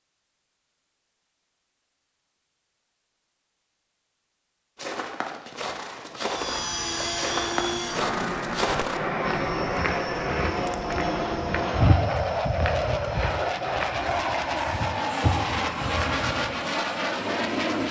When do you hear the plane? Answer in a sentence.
You can hear the plane from 6.2 to 17.8 s.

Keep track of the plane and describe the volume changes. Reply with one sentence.
The volume of the plane stays about the same.